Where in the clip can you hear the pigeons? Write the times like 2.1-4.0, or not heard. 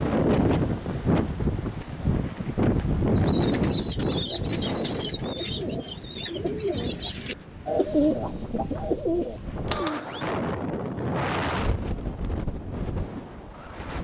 3.1-10.2.